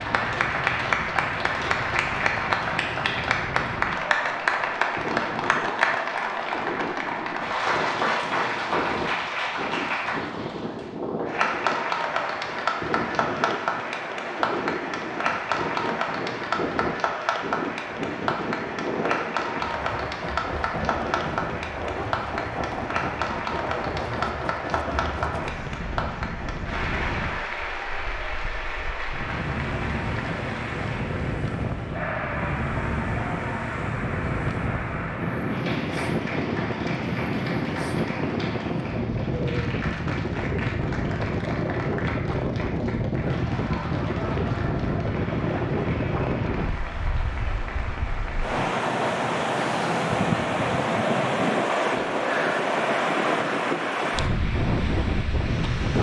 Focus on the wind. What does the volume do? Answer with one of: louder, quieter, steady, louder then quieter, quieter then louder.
louder.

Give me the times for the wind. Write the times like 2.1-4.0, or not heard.
0.0-55.9.